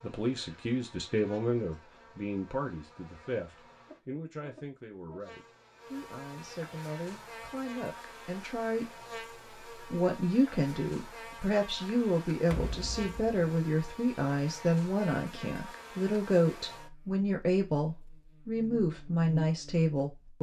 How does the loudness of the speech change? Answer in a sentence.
The loudness of the speech goes down, then up.